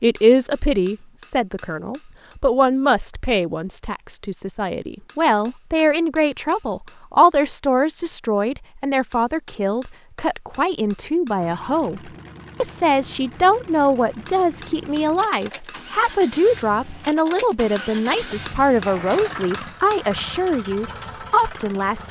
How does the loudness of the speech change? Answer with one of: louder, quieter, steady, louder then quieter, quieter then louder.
steady.